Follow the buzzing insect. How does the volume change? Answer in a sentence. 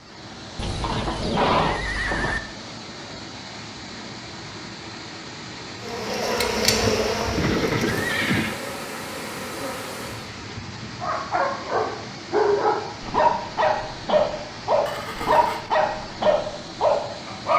The volume of the buzzing insect goes down.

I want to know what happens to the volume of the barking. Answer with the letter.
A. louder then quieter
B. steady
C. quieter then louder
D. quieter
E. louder
B.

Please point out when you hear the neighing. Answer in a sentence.
You can hear the neighing from 0.6 to 2.4 s, from 7.3 to 8.6 s and from 14.8 to 15.6 s.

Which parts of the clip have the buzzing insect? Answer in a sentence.
The buzzing insect can be heard from 5.8 to 10.3 s.